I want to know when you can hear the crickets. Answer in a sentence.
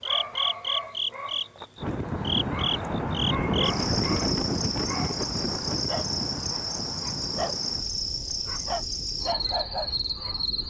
The crickets can be heard from 0.0 to 10.6 s.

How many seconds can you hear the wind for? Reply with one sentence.
The wind can be heard for 9 seconds in total.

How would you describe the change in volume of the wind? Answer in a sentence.
The volume of the wind goes down.